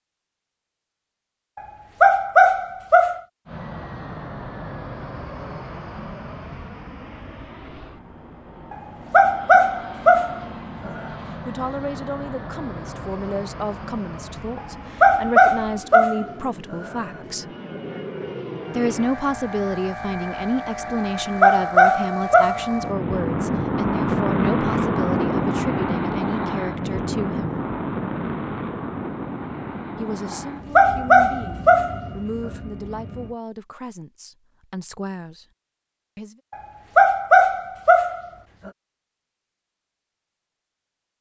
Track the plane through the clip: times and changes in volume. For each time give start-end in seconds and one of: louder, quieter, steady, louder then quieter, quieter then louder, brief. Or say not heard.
3.5-33.4 louder then quieter.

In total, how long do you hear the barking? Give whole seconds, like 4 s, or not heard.
12 s.